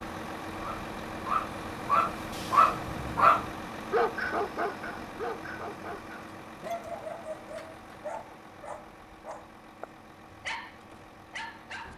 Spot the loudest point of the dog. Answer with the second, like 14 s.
3 s.